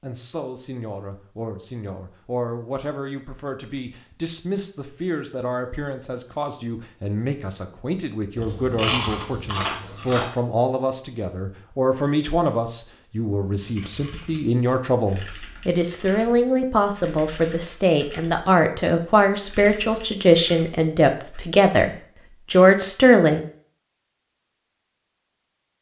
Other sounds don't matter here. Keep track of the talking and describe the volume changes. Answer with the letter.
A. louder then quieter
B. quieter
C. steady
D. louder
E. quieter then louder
D.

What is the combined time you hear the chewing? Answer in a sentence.
The chewing can be heard for 2 seconds in total.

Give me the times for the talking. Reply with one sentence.
You can hear the talking from 0.0 to 23.4 s.